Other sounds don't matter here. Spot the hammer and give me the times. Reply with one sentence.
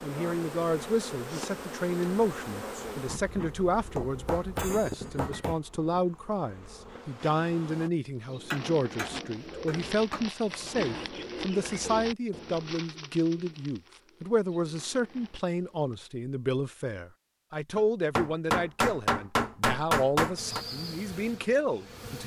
The hammer can be heard from 4.0 to 5.6 s, from 8.2 to 10.2 s and from 17.8 to 20.6 s.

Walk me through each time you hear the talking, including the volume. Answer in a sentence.
You can hear the talking from 0.0 to 22.2 s, at a steady volume.